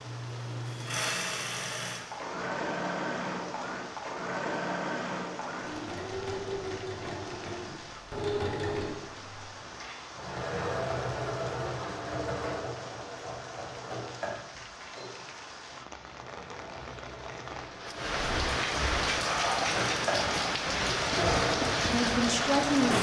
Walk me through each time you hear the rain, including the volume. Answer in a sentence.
The rain can be heard from 0.0 to 22.9 s, getting louder.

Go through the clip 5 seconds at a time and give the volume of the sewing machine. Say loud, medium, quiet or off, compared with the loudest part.
loud, loud, loud, medium, loud.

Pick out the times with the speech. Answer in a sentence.
The speech can be heard from 21.1 to 22.9 s.